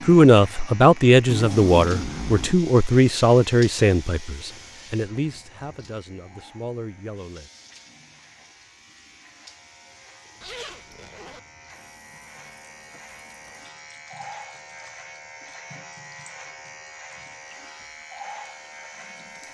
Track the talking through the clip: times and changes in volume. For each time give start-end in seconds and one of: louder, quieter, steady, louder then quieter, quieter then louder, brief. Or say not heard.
0.1-7.5 quieter.